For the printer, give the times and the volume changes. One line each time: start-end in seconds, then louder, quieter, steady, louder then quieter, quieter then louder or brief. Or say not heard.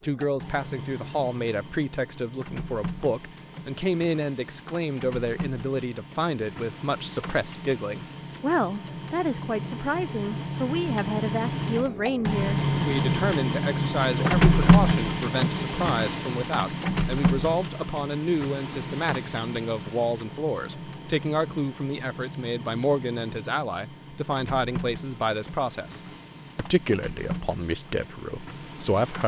0.0-29.2 louder then quieter.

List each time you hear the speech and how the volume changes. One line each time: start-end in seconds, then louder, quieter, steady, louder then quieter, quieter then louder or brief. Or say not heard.
0.0-29.2 steady.